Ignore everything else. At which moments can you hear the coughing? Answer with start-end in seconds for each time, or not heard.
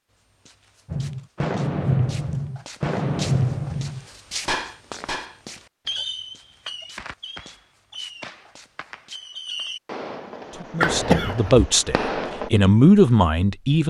10.8-11.7.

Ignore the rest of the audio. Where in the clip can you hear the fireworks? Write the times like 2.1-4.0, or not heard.
0.8-12.5.